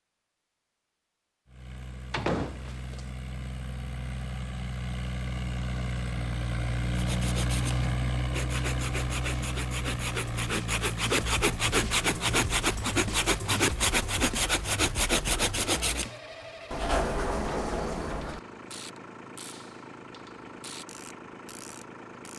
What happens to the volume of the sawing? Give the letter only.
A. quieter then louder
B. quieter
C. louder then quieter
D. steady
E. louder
E.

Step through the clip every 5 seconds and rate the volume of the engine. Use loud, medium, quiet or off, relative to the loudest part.
medium, loud, medium, quiet, quiet.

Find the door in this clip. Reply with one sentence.
You can hear the door from 2.1 to 3.0 s and from 16.7 to 18.4 s.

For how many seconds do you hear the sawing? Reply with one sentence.
The sawing can be heard for 9 seconds in total.